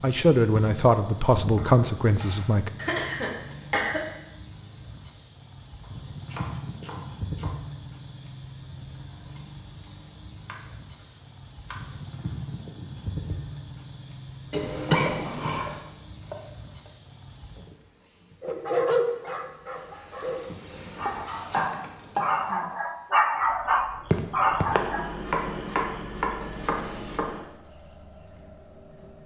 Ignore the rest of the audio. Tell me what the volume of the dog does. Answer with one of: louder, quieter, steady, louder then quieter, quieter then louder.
quieter then louder.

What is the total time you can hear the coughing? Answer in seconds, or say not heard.
3 s.